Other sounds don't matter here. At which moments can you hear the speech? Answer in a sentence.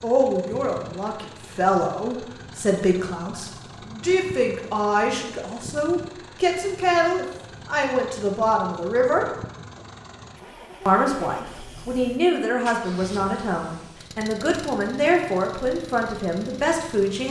The speech can be heard from 0.0 to 9.2 s and from 10.8 to 17.2 s.